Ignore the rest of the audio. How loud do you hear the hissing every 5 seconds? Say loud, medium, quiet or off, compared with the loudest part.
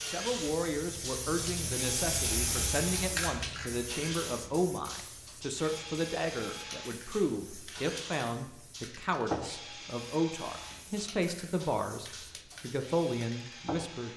loud, medium, medium.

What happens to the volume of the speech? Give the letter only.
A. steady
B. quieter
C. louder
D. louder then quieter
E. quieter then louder
A.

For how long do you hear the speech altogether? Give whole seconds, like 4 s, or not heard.
14 s.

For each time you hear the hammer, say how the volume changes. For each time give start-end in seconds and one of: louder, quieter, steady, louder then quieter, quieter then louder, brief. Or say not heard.
not heard.